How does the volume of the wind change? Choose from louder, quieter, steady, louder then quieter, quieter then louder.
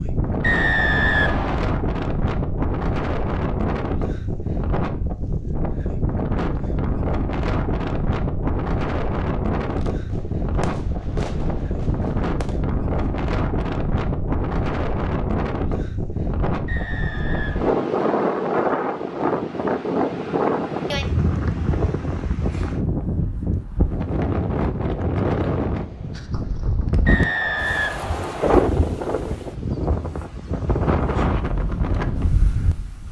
steady.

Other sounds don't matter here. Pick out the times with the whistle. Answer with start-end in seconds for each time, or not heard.
0.4-1.7, 16.6-17.8, 27.1-28.6.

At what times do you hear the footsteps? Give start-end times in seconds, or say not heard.
not heard.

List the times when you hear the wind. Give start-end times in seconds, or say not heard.
0.0-33.0.